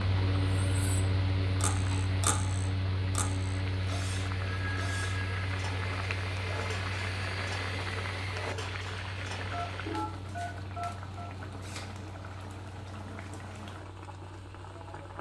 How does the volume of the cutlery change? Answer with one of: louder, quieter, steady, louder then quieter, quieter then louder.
quieter.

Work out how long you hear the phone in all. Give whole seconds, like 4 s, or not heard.
3 s.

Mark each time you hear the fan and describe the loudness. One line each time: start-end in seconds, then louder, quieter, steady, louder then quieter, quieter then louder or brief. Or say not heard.
0.0-15.1 quieter.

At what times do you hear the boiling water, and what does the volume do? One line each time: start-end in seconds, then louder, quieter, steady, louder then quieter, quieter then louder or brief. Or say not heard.
0.0-15.1 louder then quieter.